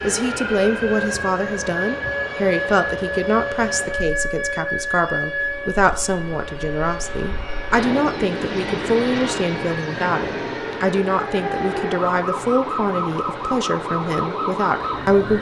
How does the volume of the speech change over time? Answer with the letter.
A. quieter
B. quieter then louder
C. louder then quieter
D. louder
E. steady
E.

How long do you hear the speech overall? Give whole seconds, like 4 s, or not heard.
15 s.